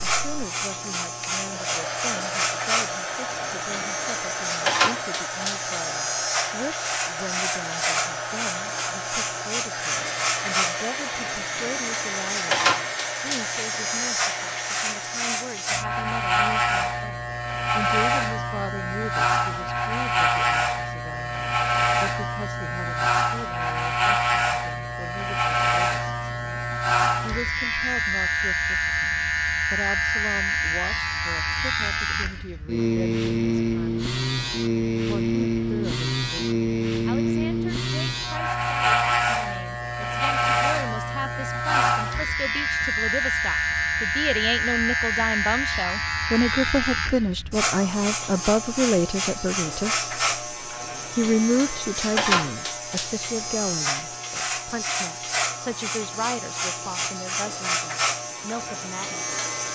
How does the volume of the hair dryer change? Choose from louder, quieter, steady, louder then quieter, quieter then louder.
steady.